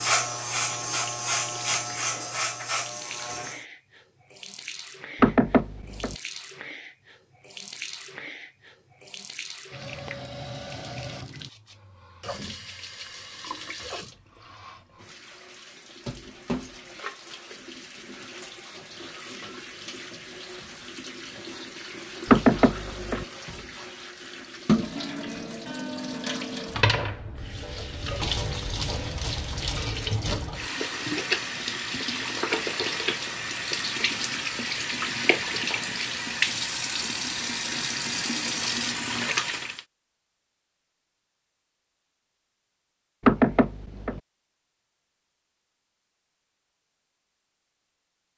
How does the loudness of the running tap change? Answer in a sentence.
The volume of the running tap goes up.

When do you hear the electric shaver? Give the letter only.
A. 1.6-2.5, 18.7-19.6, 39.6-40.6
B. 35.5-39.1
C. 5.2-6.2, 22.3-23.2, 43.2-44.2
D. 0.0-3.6
D.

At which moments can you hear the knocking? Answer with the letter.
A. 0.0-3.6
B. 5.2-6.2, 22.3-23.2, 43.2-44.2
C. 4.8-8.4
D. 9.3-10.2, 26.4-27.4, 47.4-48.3
B.